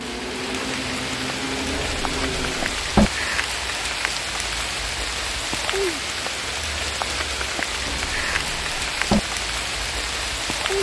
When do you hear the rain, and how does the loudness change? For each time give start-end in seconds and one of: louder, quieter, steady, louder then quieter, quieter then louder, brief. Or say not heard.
0.0-10.7 steady.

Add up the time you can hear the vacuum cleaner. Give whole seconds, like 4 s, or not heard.
3 s.